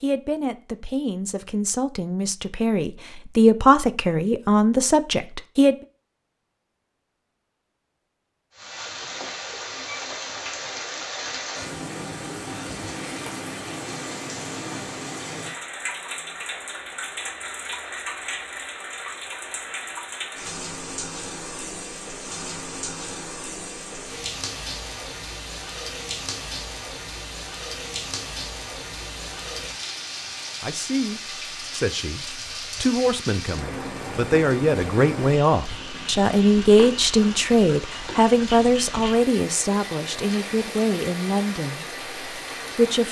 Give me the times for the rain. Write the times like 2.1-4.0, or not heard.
8.6-43.0.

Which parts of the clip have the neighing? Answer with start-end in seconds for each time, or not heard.
not heard.